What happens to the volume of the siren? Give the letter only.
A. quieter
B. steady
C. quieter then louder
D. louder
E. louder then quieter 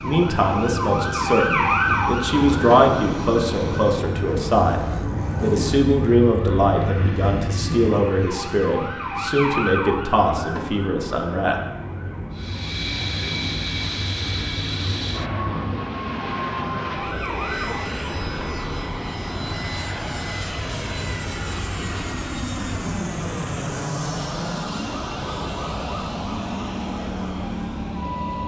A.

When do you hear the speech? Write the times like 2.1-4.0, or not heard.
0.0-11.6.